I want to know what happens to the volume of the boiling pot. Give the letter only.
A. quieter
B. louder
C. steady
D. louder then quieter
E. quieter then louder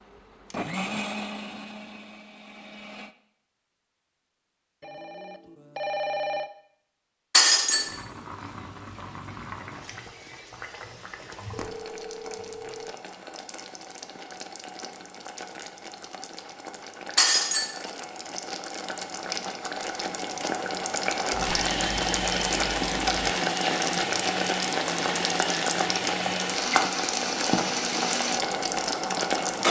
B.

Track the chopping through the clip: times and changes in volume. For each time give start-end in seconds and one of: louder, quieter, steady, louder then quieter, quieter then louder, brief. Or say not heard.
not heard.